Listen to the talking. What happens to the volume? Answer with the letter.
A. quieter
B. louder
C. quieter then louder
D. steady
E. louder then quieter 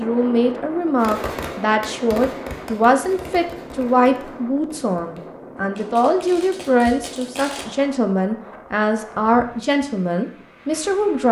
D.